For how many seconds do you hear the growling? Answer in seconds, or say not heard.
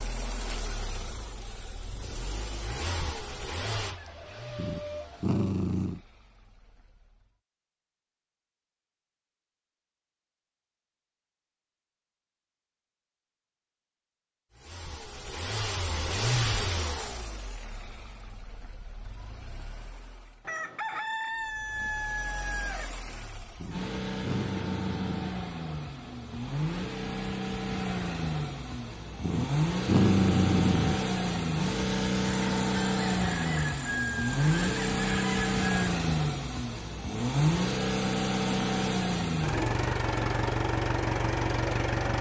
5 s.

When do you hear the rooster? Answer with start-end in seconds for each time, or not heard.
3.8-5.5, 20.4-22.9, 32.2-35.9.